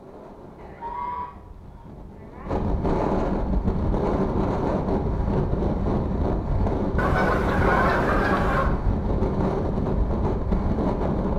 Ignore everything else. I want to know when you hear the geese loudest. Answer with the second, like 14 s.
8 s.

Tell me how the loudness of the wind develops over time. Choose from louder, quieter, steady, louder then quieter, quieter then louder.
louder.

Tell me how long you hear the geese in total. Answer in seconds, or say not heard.
4 s.